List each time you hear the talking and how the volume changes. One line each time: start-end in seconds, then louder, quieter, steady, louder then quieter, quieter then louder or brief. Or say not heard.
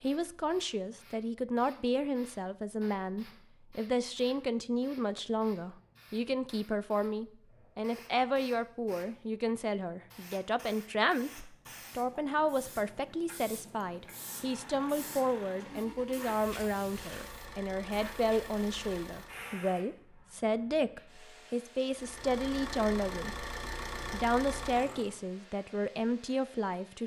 0.0-23.4 steady
24.1-27.0 brief.